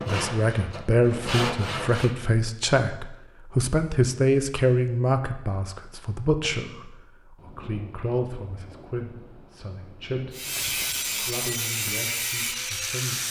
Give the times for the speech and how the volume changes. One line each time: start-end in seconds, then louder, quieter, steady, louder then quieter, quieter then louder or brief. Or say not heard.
0.1-13.2 quieter.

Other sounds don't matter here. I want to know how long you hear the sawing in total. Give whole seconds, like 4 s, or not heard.
5 s.